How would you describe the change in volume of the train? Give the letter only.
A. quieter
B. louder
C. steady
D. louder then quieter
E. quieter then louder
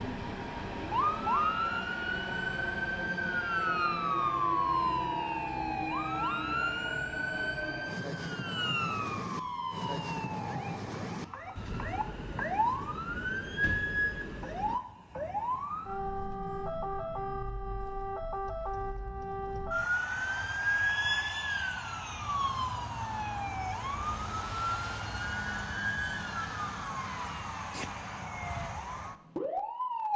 C.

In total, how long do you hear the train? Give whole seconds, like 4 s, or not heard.
15 s.